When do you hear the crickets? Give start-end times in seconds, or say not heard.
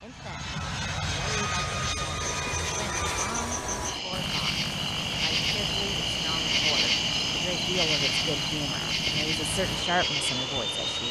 2.1-11.0.